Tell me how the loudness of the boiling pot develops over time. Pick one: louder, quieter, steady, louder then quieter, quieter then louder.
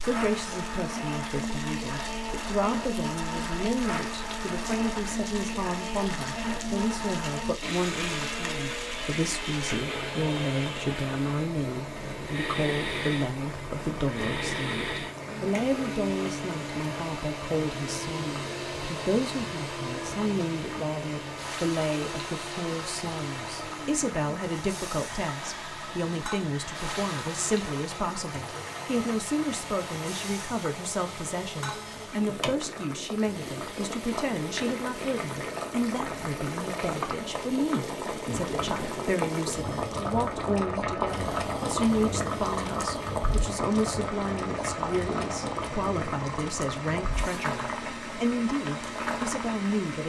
louder.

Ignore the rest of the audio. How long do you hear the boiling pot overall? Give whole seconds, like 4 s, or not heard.
50 s.